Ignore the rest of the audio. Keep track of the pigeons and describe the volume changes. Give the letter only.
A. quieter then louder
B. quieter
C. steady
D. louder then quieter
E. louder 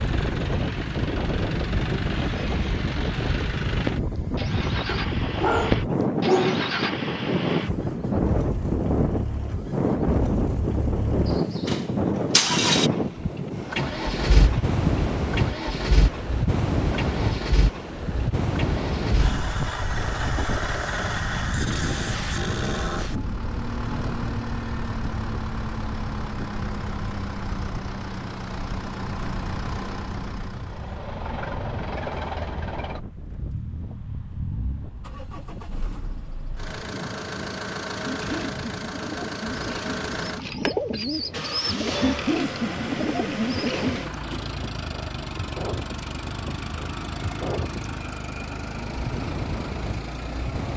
E.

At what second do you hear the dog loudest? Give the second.
6 s.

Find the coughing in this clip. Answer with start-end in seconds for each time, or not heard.
not heard.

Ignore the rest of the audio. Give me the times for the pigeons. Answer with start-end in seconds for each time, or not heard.
38.0-44.0.